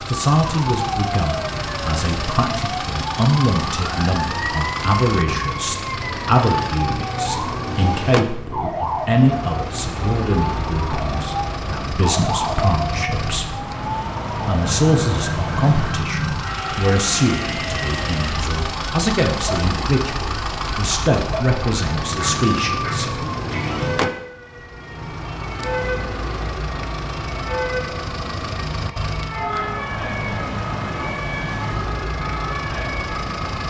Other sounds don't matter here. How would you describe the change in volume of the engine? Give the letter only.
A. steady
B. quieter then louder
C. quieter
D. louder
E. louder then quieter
A.